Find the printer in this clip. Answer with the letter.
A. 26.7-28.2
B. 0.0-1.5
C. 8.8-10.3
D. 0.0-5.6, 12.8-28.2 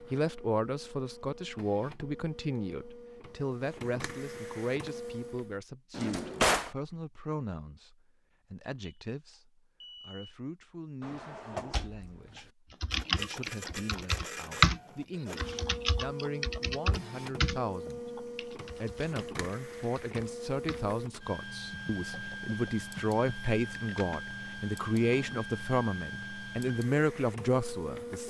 D.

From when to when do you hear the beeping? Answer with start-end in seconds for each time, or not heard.
8.8-10.3.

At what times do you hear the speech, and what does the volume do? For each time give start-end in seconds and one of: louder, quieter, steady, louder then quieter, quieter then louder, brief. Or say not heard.
0.0-28.2 quieter then louder.